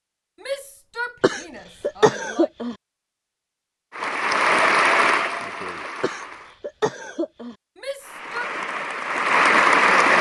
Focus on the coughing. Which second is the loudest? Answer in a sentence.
The loudest moment of the coughing is at 2 seconds.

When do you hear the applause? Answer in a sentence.
You can hear the applause from 4.0 to 6.6 s and from 8.0 to 10.1 s.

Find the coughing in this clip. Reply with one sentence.
You can hear the coughing from 1.2 to 2.8 s and from 6.0 to 7.5 s.